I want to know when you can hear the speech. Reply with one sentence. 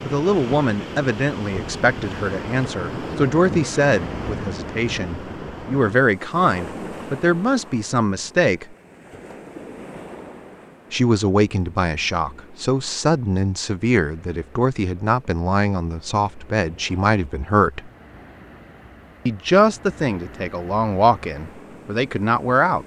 The speech can be heard from 0.0 to 8.8 s, from 10.9 to 17.9 s and from 19.2 to 22.8 s.